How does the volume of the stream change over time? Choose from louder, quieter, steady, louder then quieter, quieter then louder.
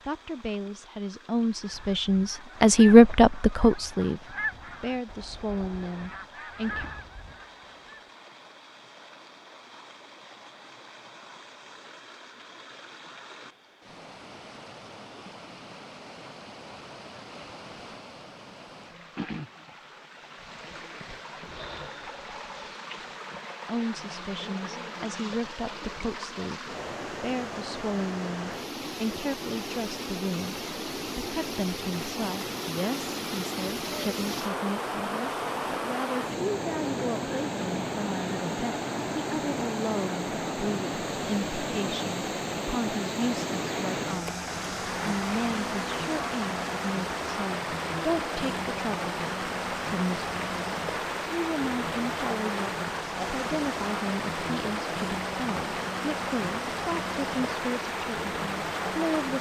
louder.